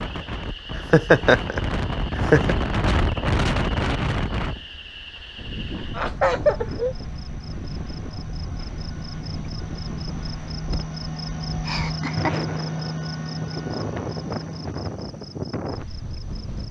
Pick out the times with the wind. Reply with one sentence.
The wind can be heard from 0.0 to 16.6 s.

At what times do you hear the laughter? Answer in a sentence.
The laughter can be heard from 0.8 to 2.5 s, from 6.0 to 7.0 s and from 11.7 to 12.3 s.